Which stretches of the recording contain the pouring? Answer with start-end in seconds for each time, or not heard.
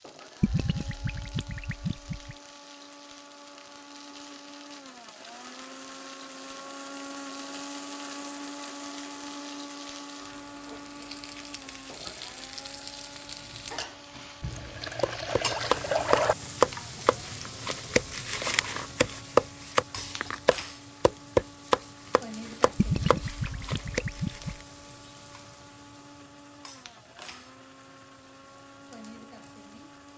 0.4-2.4, 14.4-16.4, 22.8-24.6.